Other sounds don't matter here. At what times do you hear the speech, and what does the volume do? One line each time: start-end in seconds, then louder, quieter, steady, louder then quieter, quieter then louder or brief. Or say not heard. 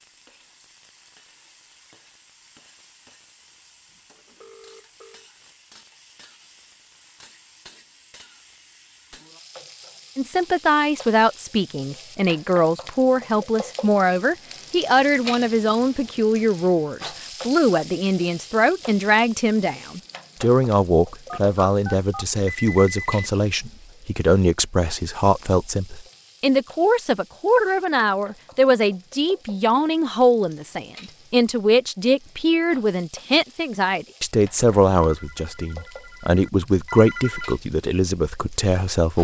10.2-39.2 steady.